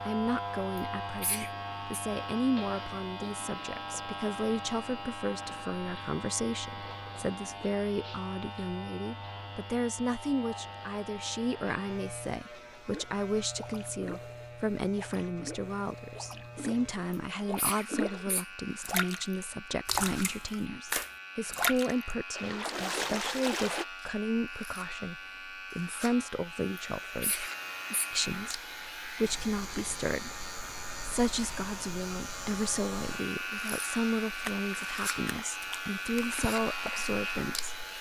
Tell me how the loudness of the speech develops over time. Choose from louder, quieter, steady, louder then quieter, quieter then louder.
steady.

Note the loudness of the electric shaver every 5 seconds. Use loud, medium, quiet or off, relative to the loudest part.
loud, medium, medium, medium, medium, medium, loud, loud.